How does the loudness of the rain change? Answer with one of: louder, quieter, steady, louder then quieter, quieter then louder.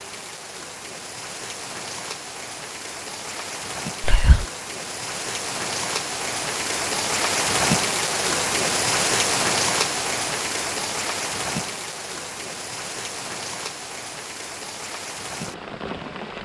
louder then quieter.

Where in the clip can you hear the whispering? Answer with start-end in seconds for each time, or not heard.
4.0-4.5.